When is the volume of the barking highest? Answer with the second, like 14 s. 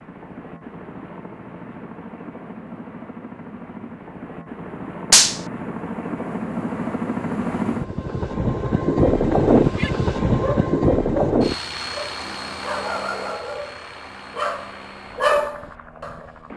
15 s.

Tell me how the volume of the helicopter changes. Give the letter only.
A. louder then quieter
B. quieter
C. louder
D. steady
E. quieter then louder
A.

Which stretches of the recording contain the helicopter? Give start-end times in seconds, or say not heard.
0.0-16.5.